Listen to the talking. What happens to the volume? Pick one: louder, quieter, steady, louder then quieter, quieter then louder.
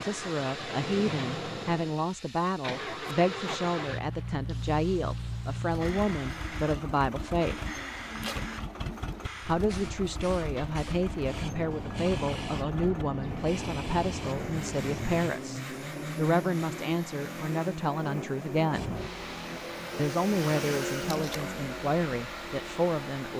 steady.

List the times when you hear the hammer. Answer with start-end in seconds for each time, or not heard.
not heard.